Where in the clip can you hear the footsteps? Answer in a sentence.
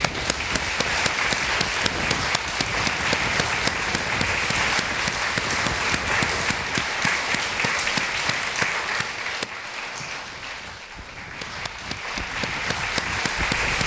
The footsteps can't be heard in this clip.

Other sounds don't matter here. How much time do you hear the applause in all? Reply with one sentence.
The applause can be heard for 14 seconds in total.